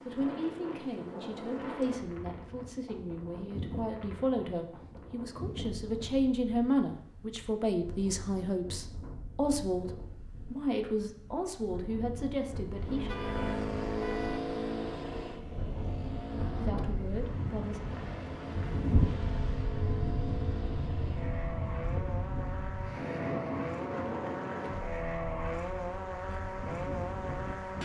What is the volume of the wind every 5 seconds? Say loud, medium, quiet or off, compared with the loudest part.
medium, medium, medium, loud, loud, medium.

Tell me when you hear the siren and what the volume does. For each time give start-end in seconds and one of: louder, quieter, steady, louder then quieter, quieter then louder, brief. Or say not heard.
not heard.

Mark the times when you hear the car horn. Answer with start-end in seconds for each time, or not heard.
13.1-14.4.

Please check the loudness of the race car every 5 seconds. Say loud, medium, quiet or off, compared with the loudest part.
off, off, loud, medium, medium, loud.